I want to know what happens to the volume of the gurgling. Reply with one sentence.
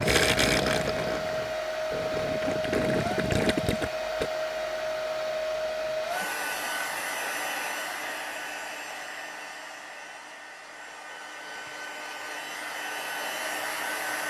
The volume of the gurgling goes down, then up.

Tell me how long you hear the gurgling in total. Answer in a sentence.
The gurgling can be heard for 4 seconds in total.